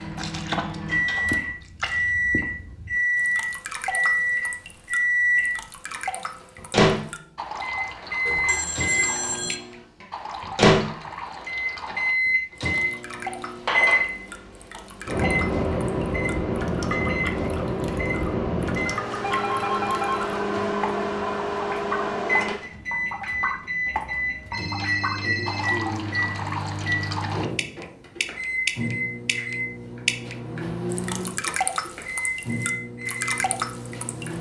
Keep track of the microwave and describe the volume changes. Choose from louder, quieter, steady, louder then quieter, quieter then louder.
quieter.